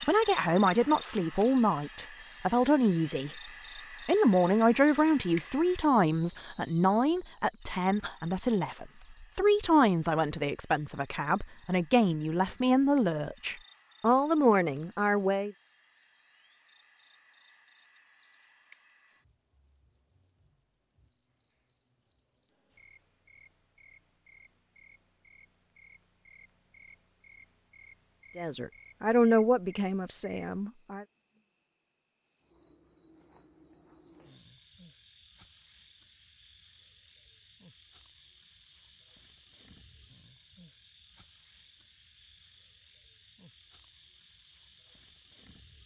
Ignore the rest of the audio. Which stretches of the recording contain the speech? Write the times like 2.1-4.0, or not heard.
0.1-3.4, 4.0-15.6, 28.4-31.1.